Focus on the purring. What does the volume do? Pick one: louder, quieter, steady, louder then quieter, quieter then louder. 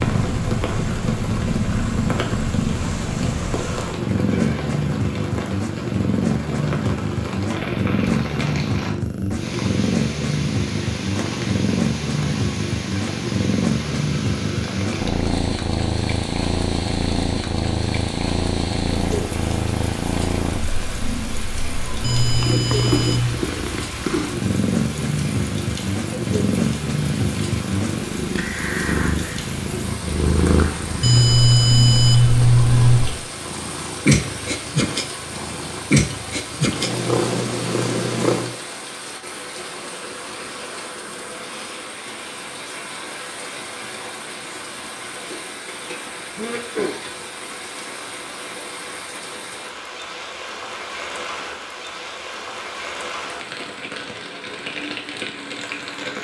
steady.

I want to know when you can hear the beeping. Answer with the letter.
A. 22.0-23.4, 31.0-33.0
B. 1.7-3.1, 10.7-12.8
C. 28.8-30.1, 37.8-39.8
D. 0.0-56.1
A.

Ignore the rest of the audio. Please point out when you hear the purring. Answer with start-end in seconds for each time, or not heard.
0.0-38.6.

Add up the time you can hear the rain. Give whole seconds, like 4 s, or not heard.
56 s.